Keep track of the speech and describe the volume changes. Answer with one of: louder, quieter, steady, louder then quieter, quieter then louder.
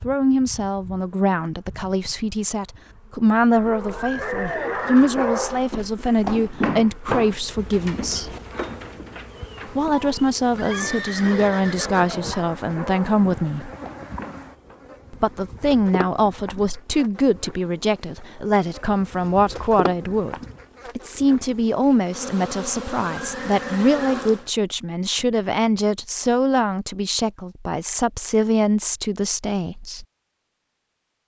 steady.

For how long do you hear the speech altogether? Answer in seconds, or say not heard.
27 s.